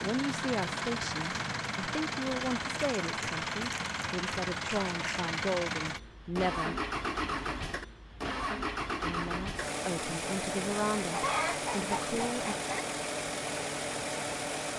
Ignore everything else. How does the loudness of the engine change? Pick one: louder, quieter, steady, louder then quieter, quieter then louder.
steady.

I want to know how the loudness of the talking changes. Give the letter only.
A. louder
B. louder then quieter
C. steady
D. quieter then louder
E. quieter
C.